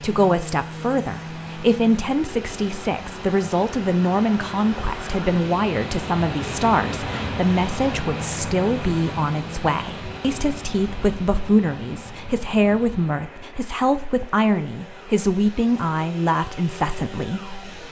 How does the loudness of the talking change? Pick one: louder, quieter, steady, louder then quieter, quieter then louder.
steady.